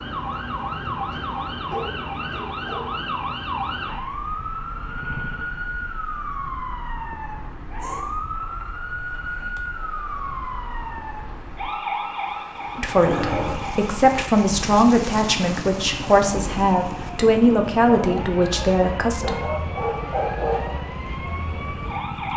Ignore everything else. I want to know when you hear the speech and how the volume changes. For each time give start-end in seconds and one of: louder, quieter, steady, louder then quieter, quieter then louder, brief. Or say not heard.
12.8-19.4 steady.